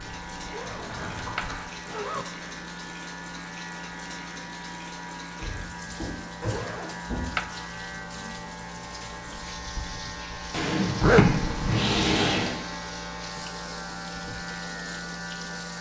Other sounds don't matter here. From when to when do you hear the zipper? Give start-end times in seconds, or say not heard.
0.5-2.2, 6.5-7.5, 11.0-11.7.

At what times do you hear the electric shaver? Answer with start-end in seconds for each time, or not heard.
0.0-15.7.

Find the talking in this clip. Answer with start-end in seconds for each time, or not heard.
not heard.